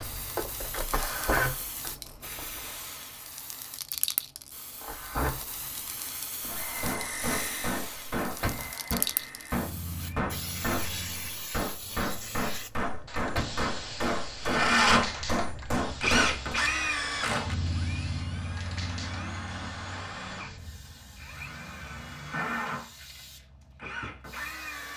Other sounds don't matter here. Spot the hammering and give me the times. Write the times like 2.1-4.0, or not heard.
6.4-16.6.